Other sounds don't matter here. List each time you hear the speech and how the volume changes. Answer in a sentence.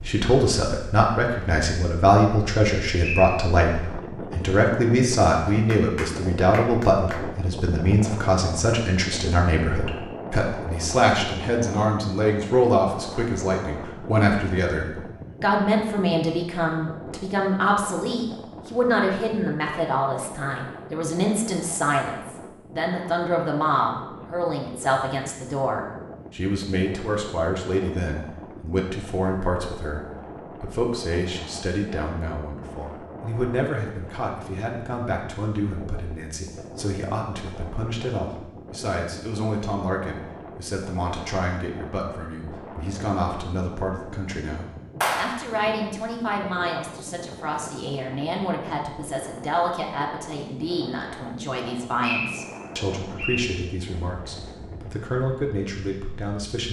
The speech can be heard from 0.1 to 56.6 s, getting quieter.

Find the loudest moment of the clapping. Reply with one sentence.
The loudest moment of the clapping is at 45 seconds.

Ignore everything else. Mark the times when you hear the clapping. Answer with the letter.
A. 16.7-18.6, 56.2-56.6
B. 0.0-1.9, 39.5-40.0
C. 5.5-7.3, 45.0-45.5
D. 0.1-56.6
C.